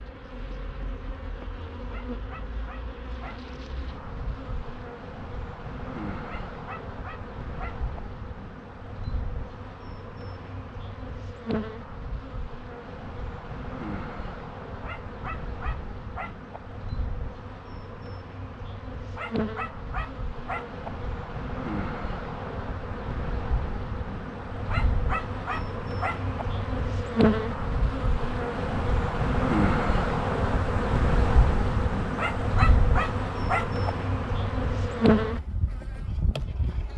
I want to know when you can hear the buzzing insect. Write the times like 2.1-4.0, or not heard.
0.0-36.9.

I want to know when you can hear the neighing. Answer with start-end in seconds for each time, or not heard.
not heard.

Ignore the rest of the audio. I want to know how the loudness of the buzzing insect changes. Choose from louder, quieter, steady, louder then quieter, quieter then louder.
louder.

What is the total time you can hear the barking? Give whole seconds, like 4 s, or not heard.
10 s.